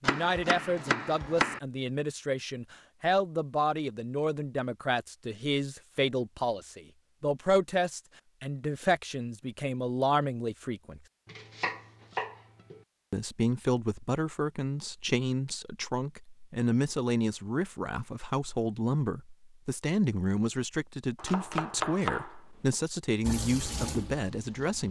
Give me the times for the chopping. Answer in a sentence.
The chopping can be heard from 0.0 to 1.6 s, from 11.3 to 12.8 s and from 21.2 to 22.3 s.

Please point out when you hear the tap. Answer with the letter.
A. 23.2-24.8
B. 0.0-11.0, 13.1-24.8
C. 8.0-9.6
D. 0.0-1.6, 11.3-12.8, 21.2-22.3
A.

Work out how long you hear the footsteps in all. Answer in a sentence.
You can't hear the footsteps here.